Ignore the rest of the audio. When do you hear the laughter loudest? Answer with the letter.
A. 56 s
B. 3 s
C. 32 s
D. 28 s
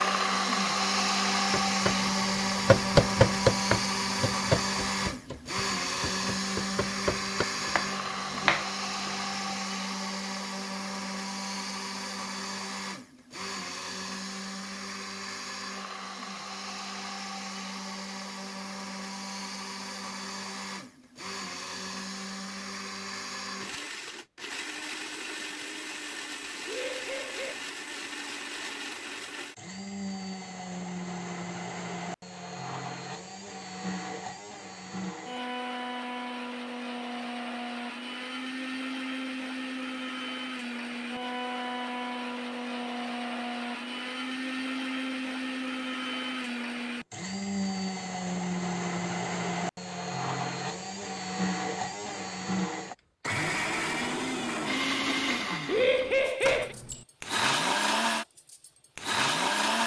A.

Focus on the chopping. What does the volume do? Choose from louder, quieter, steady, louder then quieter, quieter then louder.
quieter then louder.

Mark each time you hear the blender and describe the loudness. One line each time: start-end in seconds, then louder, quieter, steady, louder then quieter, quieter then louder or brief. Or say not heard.
0.0-59.8 quieter then louder.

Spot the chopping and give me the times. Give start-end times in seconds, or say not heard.
1.5-9.6.